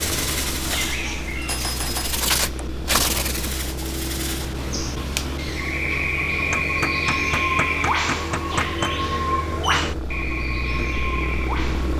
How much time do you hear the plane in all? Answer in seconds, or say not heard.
12 s.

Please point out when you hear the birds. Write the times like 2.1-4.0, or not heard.
0.0-11.9.